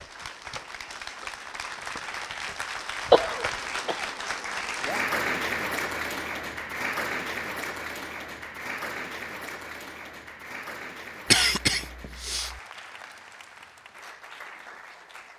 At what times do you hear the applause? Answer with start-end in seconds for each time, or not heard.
0.0-15.3.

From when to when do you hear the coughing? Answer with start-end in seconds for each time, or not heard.
3.1-4.0, 11.3-12.5.